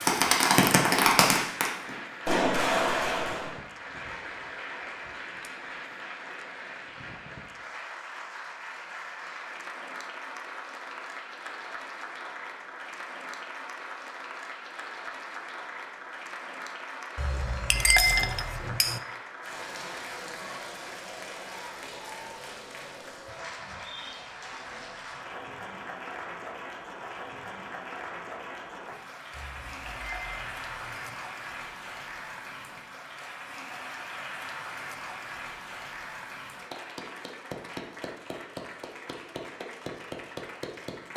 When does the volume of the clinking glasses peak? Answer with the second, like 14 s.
18 s.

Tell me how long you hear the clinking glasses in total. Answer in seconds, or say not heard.
4 s.